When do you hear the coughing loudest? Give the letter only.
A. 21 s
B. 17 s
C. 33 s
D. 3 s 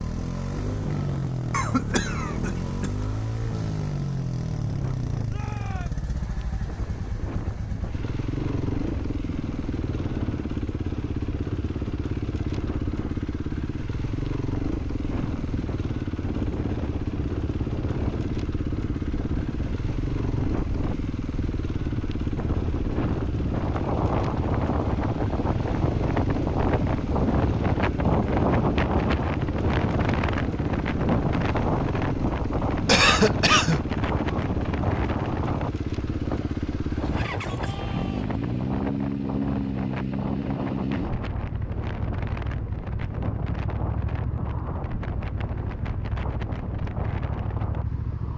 C.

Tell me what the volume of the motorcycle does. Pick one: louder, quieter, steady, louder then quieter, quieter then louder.
steady.